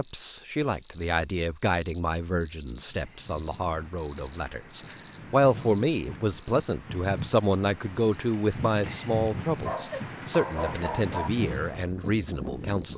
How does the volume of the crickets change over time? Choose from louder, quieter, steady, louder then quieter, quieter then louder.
quieter.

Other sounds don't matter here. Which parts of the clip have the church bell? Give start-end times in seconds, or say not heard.
not heard.